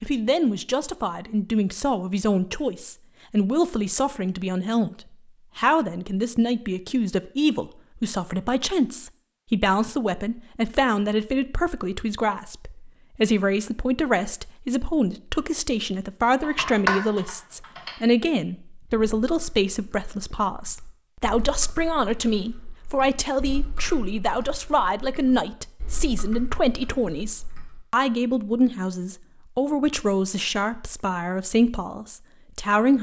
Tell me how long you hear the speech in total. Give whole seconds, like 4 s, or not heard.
33 s.